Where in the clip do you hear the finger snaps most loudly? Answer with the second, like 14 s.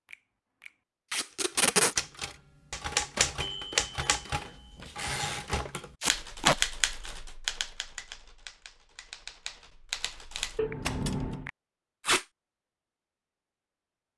11 s.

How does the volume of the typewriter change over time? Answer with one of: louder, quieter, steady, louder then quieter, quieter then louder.
quieter.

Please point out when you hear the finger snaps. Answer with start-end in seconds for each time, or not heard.
0.1-0.7, 10.6-11.5.